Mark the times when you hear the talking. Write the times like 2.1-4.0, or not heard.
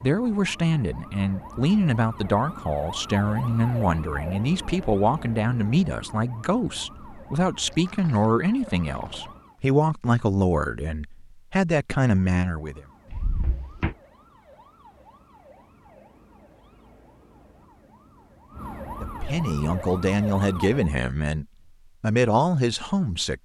0.0-12.8, 19.0-23.3.